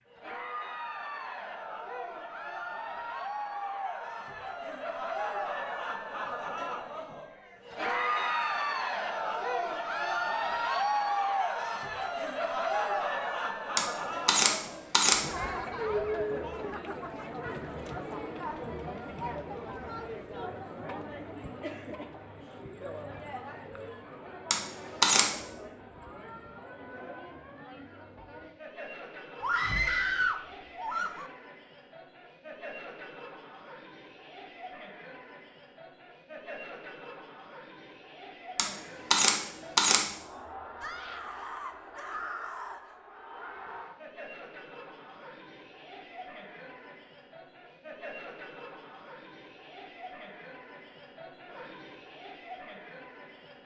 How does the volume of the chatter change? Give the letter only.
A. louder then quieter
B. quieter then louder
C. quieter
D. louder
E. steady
C.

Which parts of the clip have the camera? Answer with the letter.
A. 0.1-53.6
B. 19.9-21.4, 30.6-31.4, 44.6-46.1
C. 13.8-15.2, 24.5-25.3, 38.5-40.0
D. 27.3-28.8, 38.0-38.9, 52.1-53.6
C.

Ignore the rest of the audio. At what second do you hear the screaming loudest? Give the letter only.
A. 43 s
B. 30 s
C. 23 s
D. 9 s
B.